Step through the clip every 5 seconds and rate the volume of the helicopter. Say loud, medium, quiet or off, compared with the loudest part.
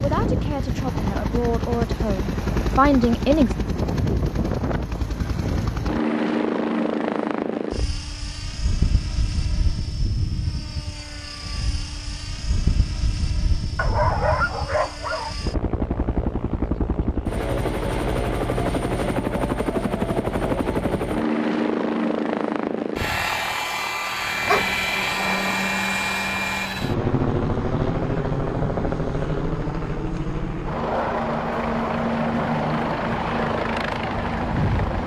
loud, loud, medium, loud, loud, loud, loud.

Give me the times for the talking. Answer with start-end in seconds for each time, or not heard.
0.0-3.5.